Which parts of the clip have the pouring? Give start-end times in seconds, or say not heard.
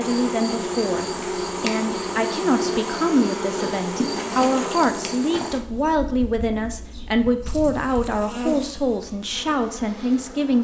not heard.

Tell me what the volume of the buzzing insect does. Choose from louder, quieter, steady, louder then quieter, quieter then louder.
quieter then louder.